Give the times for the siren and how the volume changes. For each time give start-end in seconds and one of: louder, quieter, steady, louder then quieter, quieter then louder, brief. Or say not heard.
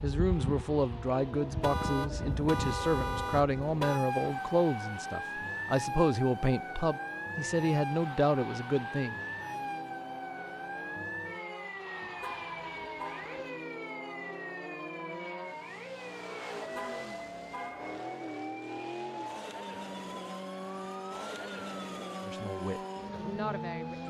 0.0-24.0 quieter.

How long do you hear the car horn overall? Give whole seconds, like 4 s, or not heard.
5 s.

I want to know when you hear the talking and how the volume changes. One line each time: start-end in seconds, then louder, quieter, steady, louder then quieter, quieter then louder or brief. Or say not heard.
0.0-9.2 steady
22.2-24.0 brief.